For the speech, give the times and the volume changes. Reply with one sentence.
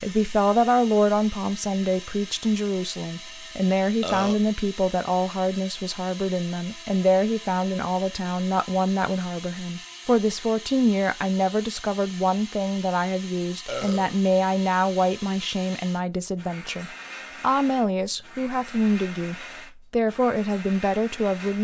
The speech can be heard from 0.0 to 21.5 s, at a steady volume.